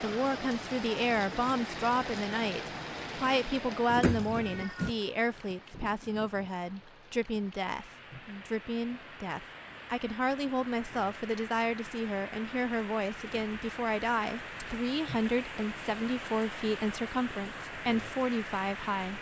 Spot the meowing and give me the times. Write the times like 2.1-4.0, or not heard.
4.0-4.9.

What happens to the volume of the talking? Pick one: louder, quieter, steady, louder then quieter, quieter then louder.
steady.